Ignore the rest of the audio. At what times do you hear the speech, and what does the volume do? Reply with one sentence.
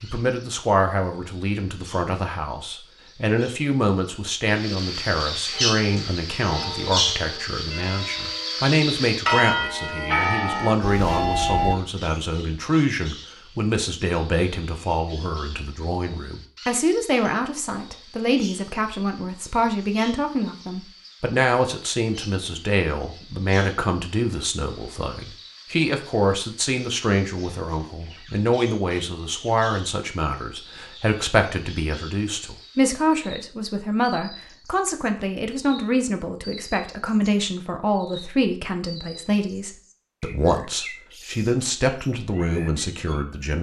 You can hear the speech from 0.0 to 43.5 s, at a steady volume.